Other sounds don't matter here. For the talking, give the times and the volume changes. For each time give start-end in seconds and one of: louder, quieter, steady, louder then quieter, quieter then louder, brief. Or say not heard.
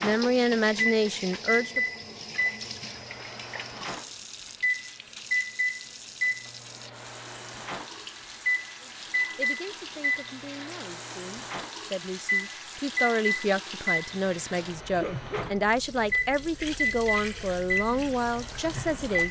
0.0-1.8 brief
8.8-19.2 louder.